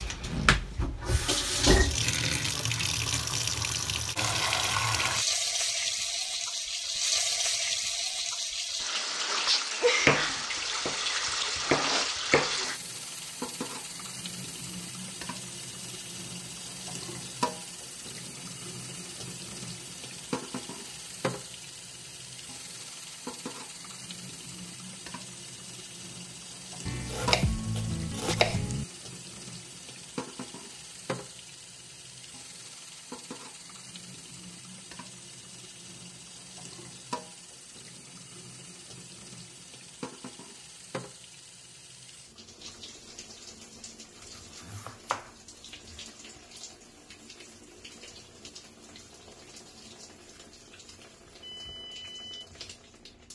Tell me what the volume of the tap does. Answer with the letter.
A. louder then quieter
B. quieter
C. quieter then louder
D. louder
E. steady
B.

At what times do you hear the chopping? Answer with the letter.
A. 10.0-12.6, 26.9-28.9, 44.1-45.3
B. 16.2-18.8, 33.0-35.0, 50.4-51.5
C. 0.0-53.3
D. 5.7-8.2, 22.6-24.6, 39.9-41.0
A.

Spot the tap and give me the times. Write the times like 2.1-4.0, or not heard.
0.0-53.3.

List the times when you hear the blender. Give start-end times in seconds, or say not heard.
not heard.